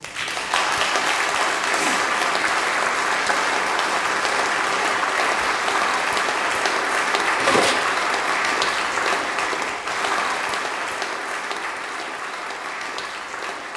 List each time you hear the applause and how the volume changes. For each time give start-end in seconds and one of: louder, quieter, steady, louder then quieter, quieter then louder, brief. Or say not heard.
0.0-13.7 quieter.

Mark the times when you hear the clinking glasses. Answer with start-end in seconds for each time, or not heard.
7.3-8.1.